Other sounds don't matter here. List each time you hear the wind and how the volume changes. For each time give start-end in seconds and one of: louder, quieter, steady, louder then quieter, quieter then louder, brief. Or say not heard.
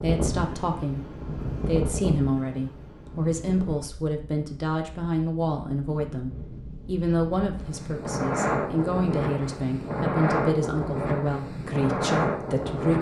0.0-12.9 quieter then louder.